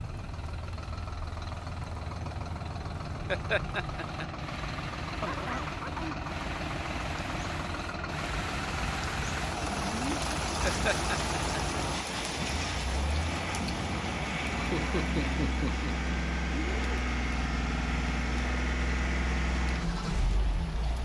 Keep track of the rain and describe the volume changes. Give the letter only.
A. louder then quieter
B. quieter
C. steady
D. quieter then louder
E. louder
A.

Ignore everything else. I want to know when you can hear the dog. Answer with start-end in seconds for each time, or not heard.
5.2-6.2.